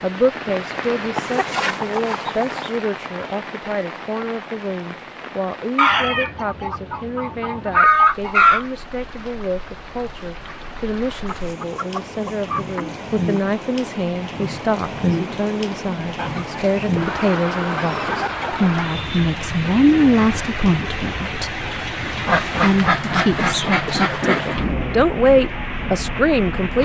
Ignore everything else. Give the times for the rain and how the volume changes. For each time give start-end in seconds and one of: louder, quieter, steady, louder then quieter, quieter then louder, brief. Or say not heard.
0.0-26.8 quieter then louder.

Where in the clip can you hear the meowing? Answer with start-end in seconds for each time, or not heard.
not heard.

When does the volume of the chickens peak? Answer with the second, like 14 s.
8 s.